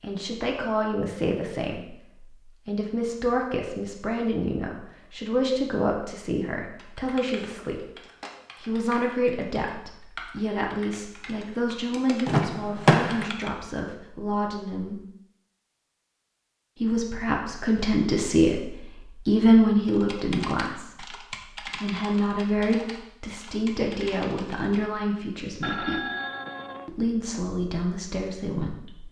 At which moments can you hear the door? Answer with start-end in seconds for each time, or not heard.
12.2-13.3.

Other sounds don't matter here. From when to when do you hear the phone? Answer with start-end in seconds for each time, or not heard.
25.6-26.9.